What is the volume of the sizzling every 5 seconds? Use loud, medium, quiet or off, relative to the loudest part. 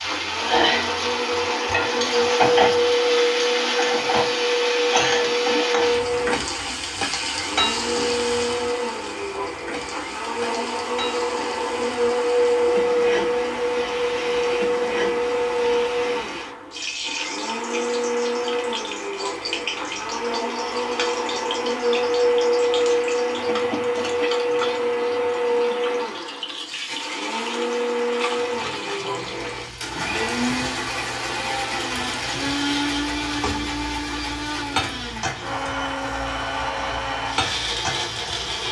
loud, loud, medium, medium, medium, medium, medium, medium.